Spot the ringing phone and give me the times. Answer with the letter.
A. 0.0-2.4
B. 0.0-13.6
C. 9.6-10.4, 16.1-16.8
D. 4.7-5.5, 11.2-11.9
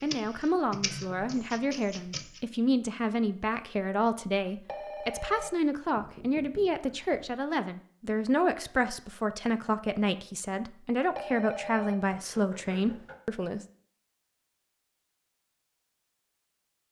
D.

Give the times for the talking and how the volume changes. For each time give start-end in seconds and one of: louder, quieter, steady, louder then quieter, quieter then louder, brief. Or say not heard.
0.0-13.6 steady.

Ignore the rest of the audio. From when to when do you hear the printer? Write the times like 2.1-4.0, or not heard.
0.0-2.4.